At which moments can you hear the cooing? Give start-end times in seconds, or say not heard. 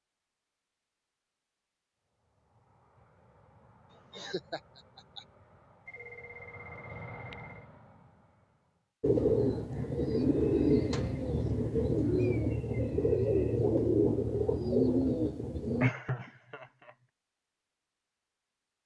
9.0-15.9.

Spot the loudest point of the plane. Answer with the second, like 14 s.
7 s.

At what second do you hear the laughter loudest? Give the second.
16 s.